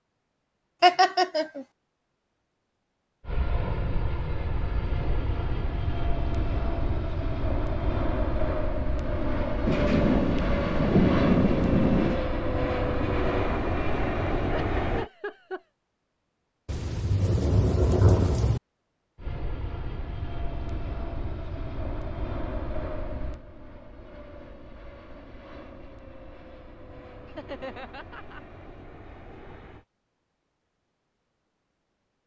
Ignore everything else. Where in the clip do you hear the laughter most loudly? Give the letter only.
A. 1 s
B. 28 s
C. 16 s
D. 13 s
A.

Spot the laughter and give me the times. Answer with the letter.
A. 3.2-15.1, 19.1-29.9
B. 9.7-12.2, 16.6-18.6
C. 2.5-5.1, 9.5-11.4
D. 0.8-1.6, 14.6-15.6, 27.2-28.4
D.